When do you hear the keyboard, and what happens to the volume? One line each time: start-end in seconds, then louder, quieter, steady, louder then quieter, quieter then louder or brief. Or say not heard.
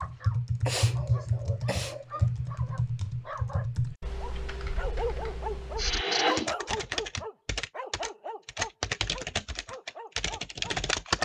0.0-11.1 quieter then louder.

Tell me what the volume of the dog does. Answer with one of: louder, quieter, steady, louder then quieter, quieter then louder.
louder then quieter.